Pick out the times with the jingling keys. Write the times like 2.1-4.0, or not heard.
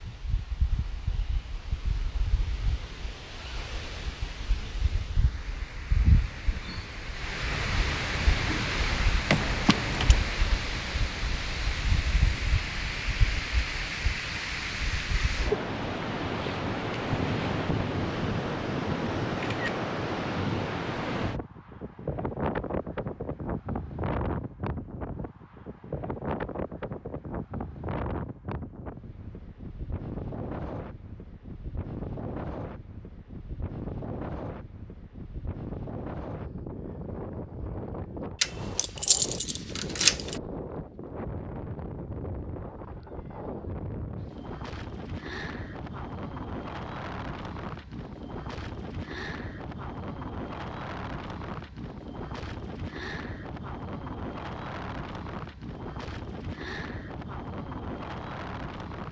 9.2-10.2, 38.4-40.4.